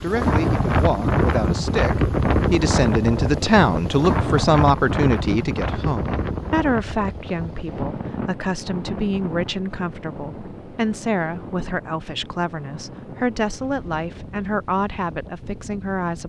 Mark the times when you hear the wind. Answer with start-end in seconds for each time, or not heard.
0.0-16.2.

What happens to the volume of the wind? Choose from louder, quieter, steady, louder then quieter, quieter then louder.
quieter.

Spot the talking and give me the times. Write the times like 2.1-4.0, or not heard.
0.0-16.2.